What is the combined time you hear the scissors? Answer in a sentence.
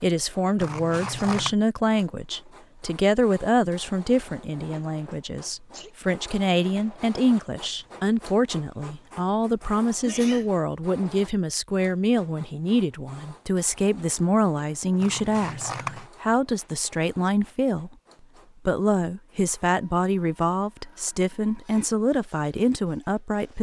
You can hear the scissors for 2 seconds altogether.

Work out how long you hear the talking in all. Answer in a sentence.
The talking can be heard for 23 seconds in total.